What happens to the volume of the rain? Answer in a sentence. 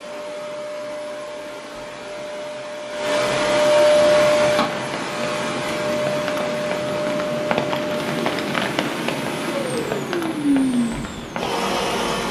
The loudness of the rain goes up, then down.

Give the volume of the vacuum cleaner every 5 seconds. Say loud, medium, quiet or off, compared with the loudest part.
loud, medium, loud.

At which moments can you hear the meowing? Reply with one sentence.
The meowing can't be heard in this clip.